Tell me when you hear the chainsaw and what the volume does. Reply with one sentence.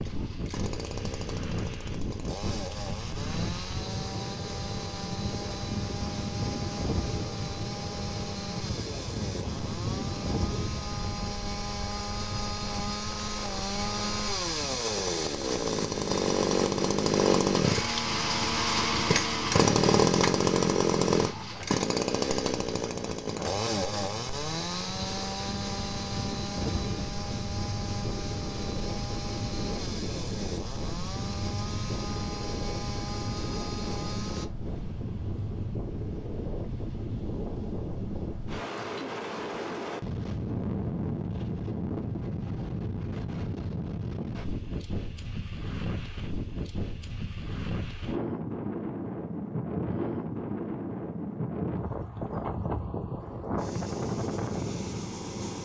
You can hear the chainsaw from 0.0 to 34.5 s, getting louder then quieter.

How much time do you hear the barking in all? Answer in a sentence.
The barking can't be heard in this clip.